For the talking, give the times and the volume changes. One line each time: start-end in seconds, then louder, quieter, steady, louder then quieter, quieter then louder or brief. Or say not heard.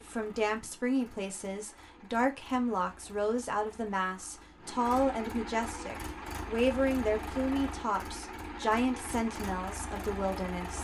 0.1-10.7 steady.